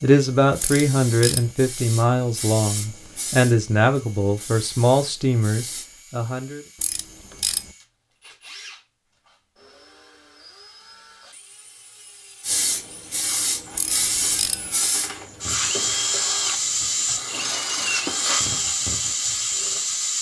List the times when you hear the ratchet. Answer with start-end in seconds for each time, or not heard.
0.6-1.5, 6.8-7.7, 13.8-14.7.